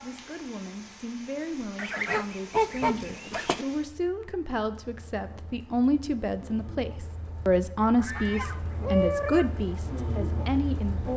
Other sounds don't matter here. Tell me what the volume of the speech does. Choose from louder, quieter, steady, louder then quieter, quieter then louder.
louder.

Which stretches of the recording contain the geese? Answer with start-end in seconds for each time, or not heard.
1.8-3.6, 7.8-9.5.